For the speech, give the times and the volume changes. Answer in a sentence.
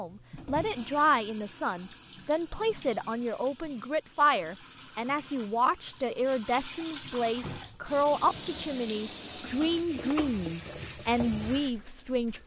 The speech can be heard from 0.0 to 12.4 s, at a steady volume.